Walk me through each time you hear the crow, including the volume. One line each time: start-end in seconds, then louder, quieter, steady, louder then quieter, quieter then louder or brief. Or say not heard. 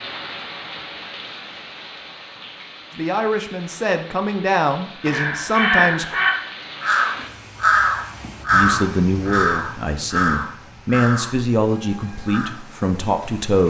5.0-12.5 quieter.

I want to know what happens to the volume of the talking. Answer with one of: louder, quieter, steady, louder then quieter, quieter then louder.
steady.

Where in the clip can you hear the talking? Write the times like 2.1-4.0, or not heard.
2.9-6.2, 8.5-13.6.